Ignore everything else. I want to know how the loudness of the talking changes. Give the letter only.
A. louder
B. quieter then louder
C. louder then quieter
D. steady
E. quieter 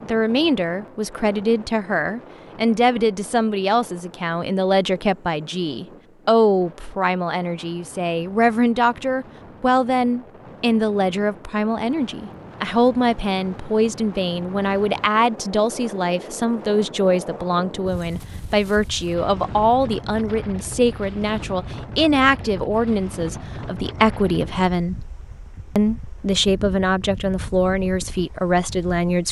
D.